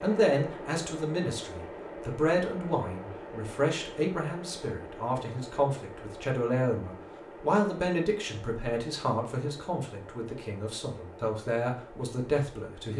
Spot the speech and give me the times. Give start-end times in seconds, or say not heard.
0.0-12.9.